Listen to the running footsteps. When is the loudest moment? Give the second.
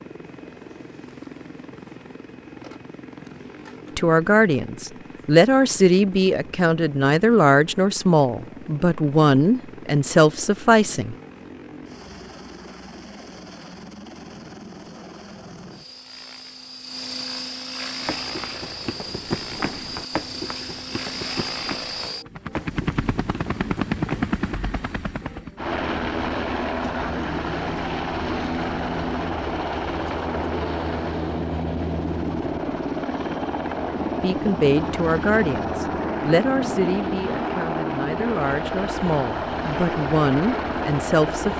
19 s.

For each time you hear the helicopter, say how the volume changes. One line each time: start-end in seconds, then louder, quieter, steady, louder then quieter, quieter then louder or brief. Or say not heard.
0.0-41.5 louder.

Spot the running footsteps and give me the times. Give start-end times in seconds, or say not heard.
18.1-24.6.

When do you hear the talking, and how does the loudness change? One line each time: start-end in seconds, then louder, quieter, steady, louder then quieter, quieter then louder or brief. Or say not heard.
4.0-11.2 steady
34.2-41.5 quieter then louder.